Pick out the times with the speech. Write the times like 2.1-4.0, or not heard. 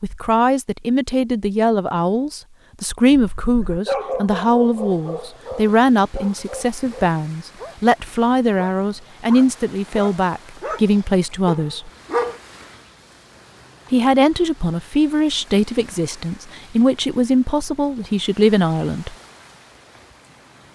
0.0-11.9, 13.9-19.1.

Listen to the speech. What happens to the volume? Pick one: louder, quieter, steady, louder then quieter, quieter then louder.
steady.